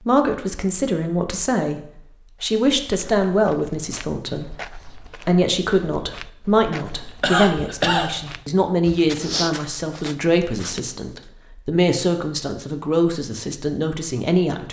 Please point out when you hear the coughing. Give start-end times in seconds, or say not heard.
6.9-8.2.